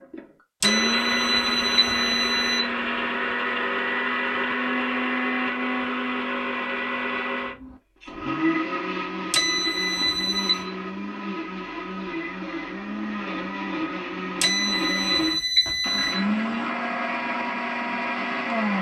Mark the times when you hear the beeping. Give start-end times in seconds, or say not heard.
0.6-2.6, 9.3-10.7, 14.4-16.2.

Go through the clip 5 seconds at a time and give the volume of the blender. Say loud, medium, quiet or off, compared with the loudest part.
loud, loud, medium, loud.